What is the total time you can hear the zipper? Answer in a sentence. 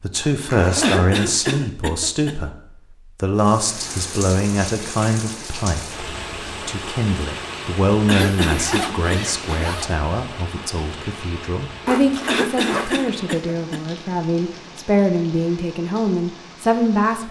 The zipper can be heard for 4 seconds in total.